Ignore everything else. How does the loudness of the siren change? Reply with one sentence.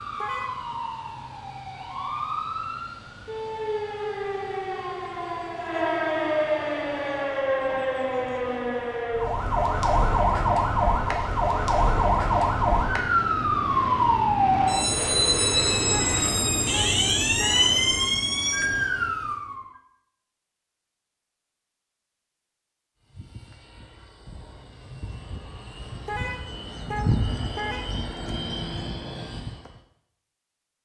The loudness of the siren goes up.